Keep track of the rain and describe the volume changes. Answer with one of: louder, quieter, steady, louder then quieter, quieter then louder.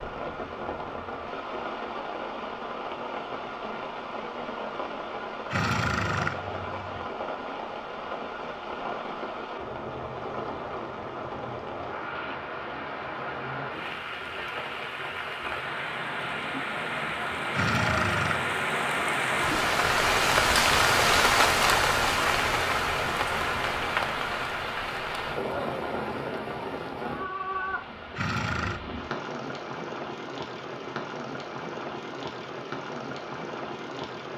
louder then quieter.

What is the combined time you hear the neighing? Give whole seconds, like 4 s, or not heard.
3 s.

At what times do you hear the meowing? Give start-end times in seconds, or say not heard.
not heard.